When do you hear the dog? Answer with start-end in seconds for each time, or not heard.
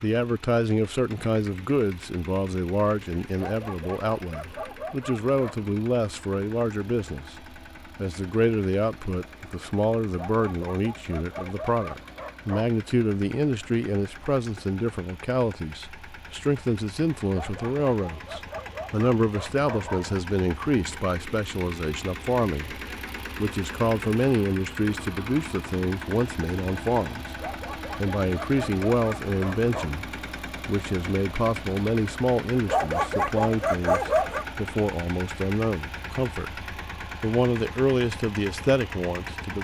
3.4-5.6, 10.2-12.7, 17.3-20.2, 27.4-30.0, 32.6-34.5.